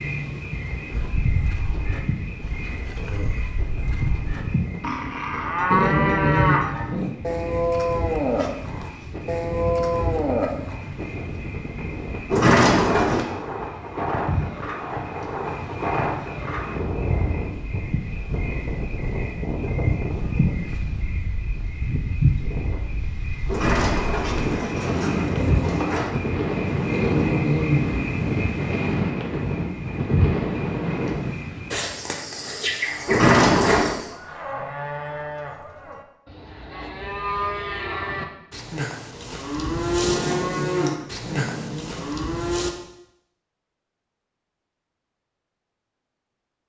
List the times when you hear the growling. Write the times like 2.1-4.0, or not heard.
5.7-7.2, 26.9-27.9, 40.0-42.0.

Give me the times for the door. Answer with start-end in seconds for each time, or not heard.
12.3-13.2, 23.4-26.2, 33.0-34.0.